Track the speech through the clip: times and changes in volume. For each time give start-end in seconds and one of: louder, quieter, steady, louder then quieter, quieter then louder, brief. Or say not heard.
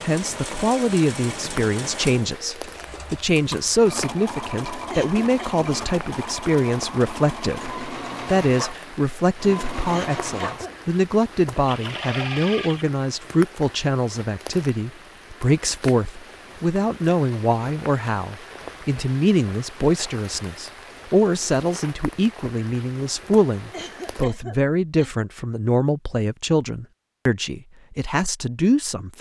0.0-29.1 steady.